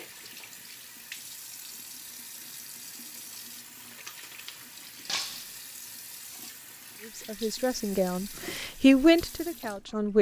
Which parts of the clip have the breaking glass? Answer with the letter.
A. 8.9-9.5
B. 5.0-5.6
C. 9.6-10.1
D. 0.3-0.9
B.